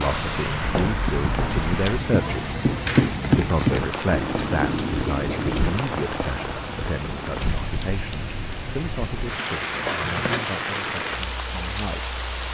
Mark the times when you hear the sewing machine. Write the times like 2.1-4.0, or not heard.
not heard.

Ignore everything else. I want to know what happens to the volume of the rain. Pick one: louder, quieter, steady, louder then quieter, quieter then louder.
steady.